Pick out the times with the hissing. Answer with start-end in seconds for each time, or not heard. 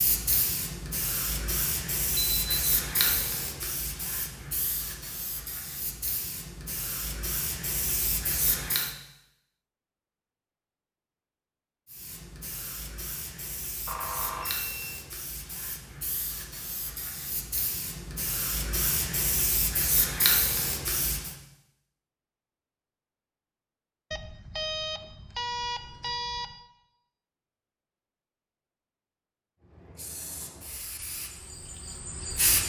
0.0-8.9, 11.8-21.4, 29.6-32.6.